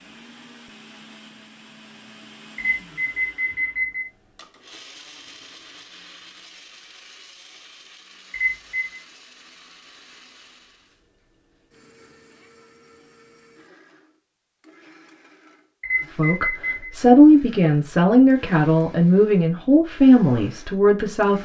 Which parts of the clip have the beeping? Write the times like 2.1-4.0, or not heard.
2.5-4.0, 8.3-8.9, 15.8-16.9.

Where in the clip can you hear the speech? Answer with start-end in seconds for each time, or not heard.
16.1-21.4.